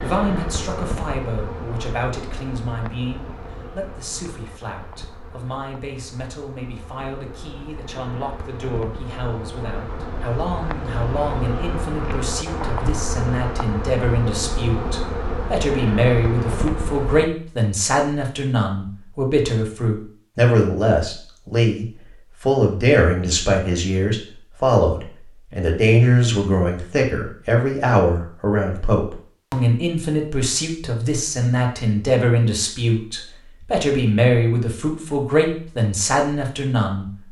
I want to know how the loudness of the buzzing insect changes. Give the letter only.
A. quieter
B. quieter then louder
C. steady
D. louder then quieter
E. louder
B.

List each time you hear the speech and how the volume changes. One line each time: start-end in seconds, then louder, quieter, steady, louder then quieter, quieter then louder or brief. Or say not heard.
0.0-37.1 louder.